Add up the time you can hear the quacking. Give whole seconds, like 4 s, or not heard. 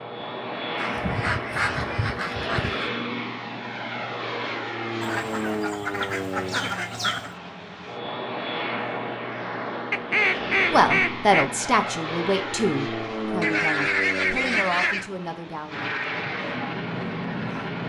8 s.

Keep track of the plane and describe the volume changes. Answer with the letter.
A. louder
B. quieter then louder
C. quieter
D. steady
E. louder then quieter
D.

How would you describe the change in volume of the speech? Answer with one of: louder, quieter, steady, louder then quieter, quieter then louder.
quieter.